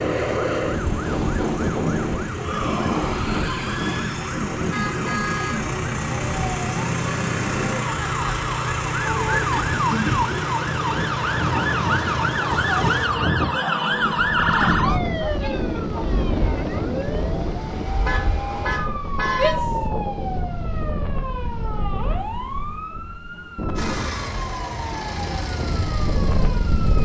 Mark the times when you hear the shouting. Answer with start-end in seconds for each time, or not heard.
2.3-4.3, 13.5-14.8, 19.3-19.8.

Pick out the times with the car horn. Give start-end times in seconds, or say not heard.
4.7-5.7, 9.2-10.3, 18.1-19.6.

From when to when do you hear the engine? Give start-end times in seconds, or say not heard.
0.0-13.1, 23.8-27.0.